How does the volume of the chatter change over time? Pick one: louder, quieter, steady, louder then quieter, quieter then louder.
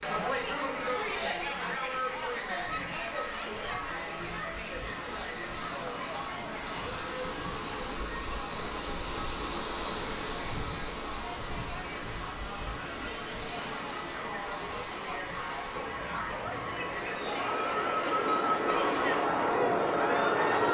quieter then louder.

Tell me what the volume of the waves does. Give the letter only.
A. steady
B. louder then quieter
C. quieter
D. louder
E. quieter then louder
B.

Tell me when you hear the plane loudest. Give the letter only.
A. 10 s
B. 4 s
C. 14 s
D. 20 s
D.